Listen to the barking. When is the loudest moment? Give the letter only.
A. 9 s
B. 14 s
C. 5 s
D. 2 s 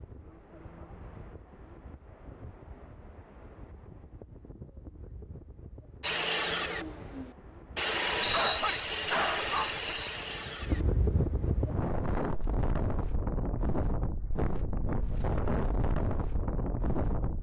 A.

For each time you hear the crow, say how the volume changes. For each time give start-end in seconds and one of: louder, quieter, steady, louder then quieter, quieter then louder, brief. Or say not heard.
not heard.